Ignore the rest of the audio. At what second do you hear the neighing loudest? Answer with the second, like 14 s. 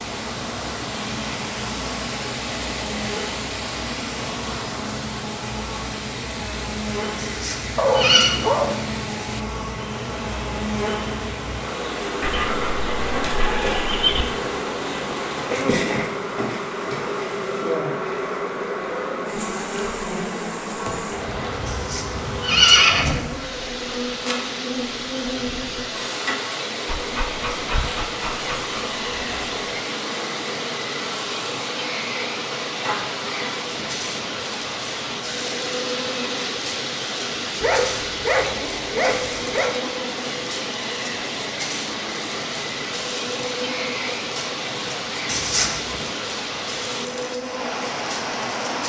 23 s.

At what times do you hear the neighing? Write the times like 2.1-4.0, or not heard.
7.2-8.3, 21.6-23.2, 45.2-46.0.